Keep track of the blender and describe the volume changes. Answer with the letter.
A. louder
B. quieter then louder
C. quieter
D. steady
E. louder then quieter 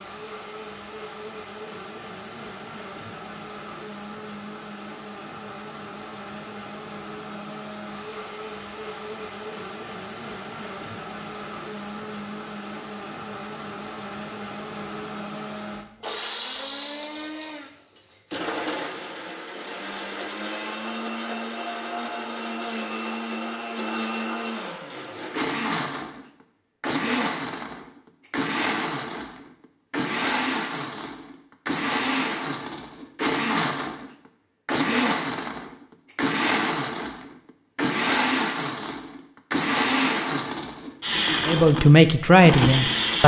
A.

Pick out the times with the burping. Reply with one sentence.
You can't hear the burping here.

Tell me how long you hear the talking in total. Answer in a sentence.
You can hear the talking for 2 seconds altogether.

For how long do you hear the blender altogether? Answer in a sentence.
You can hear the blender for 43 seconds altogether.